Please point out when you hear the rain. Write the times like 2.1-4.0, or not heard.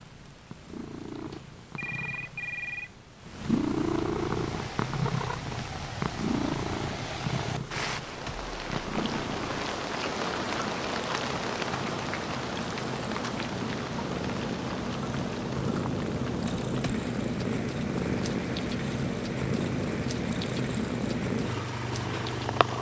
4.2-22.7.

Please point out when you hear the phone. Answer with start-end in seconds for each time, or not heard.
1.3-2.9.